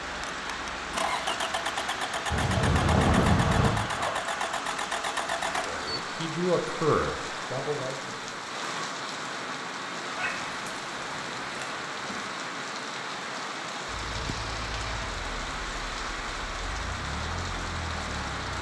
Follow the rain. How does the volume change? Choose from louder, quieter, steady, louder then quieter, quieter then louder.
steady.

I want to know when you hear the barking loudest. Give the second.
3 s.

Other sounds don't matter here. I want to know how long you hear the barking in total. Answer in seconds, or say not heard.
4 s.